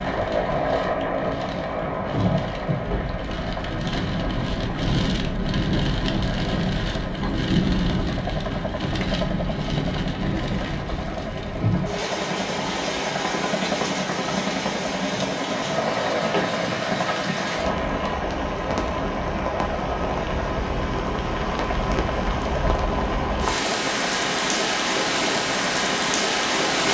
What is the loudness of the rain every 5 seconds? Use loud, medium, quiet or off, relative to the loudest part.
medium, loud, medium, medium, loud, loud.